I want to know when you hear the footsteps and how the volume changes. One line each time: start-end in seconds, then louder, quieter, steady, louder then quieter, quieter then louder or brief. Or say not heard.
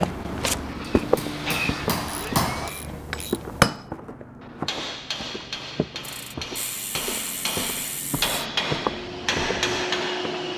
0.0-10.5 quieter then louder.